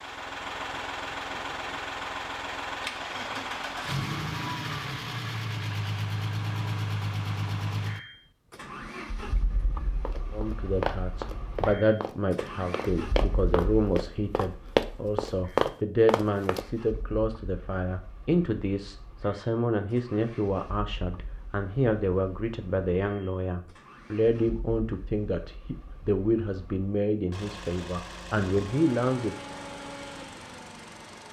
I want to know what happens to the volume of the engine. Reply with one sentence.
The loudness of the engine goes down, then up.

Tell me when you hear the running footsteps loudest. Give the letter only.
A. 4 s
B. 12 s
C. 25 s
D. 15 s
D.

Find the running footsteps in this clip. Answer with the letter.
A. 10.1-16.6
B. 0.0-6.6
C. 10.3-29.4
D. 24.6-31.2
A.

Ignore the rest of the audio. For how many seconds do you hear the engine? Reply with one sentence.
The engine can be heard for 31 seconds in total.